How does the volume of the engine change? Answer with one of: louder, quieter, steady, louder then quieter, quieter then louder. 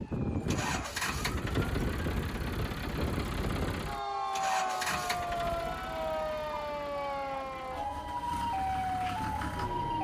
quieter then louder.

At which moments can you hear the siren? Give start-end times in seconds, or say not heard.
0.0-9.9.